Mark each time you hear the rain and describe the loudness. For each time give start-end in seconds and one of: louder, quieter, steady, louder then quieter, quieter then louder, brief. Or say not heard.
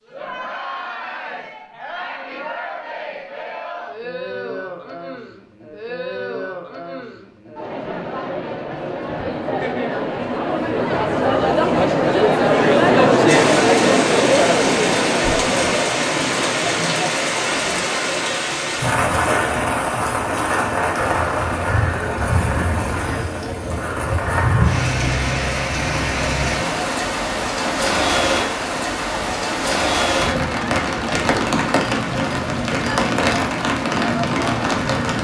13.2-35.1 steady.